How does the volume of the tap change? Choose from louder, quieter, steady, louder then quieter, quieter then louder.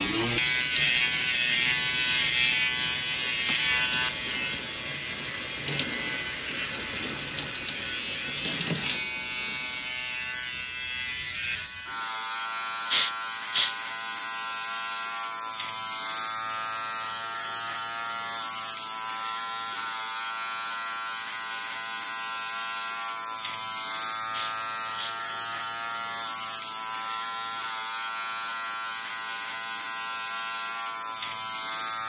louder.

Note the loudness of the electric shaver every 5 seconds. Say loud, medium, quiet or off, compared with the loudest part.
loud, medium, medium, medium, medium, medium, medium.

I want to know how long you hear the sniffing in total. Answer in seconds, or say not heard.
2 s.